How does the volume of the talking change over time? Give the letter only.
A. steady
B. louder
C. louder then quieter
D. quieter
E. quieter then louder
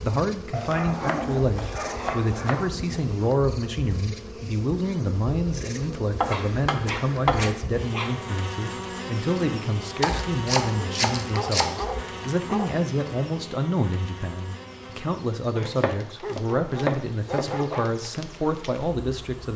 A.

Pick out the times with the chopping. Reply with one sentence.
The chopping can be heard from 1.1 to 3.0 s, from 6.2 to 7.5 s, from 10.0 to 11.9 s and from 15.6 to 17.5 s.